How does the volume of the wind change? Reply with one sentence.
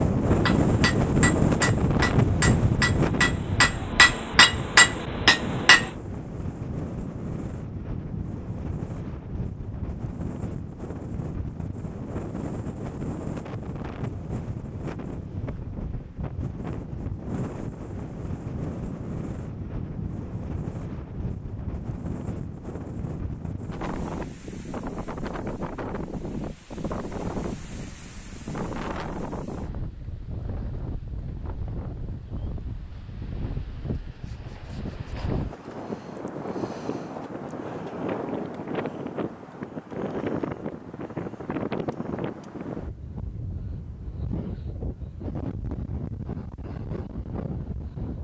The loudness of the wind goes down.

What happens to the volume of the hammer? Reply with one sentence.
The volume of the hammer goes up.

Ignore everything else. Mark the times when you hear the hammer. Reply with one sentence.
You can hear the hammer from 0.2 to 5.9 s.